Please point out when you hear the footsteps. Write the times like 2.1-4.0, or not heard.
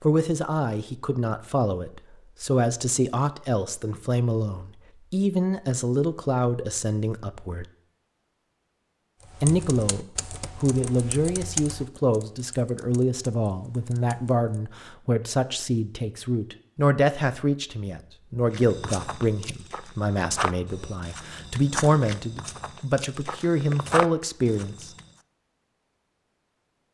18.5-25.1.